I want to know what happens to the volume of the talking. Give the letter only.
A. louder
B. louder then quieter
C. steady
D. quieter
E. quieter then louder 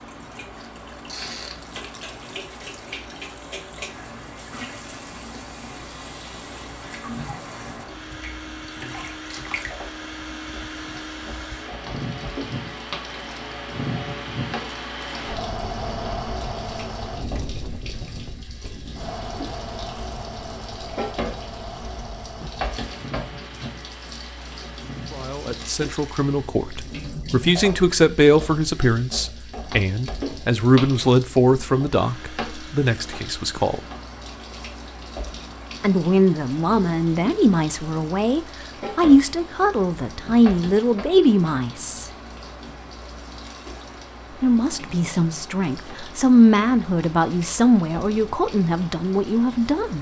C.